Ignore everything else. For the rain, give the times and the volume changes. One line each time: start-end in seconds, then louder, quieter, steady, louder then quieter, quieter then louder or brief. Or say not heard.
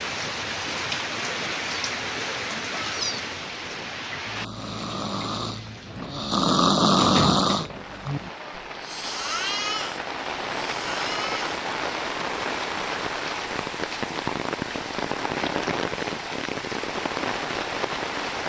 0.0-18.4 quieter then louder.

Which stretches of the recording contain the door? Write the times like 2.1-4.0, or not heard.
6.9-8.2.